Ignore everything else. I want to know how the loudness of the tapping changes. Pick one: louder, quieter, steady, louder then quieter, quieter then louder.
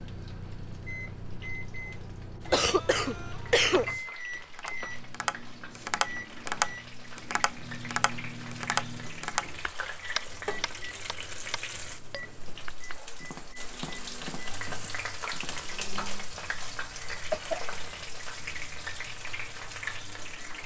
quieter.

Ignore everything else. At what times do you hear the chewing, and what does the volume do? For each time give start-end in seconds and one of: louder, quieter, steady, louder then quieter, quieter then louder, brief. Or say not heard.
not heard.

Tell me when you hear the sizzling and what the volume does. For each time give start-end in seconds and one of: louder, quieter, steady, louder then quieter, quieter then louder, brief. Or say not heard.
0.0-20.6 louder.